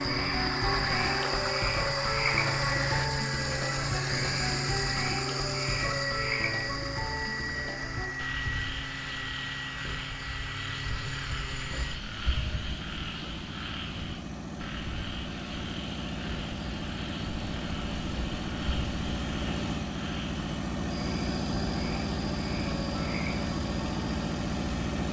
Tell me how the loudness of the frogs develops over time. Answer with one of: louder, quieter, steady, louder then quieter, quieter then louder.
quieter.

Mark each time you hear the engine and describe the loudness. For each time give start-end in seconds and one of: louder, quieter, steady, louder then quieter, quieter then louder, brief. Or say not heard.
0.0-25.0 quieter then louder.